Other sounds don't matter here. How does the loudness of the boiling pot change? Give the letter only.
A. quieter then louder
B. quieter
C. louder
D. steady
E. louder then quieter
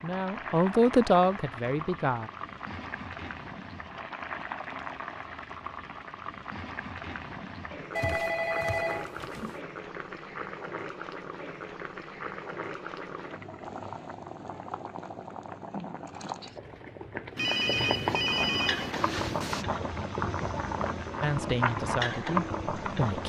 C.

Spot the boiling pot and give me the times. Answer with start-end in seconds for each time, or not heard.
0.0-23.2.